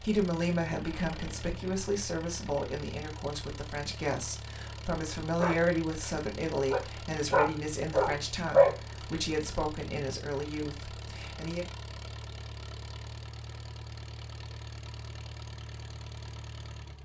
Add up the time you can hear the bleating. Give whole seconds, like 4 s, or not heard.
not heard.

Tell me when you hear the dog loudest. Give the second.
9 s.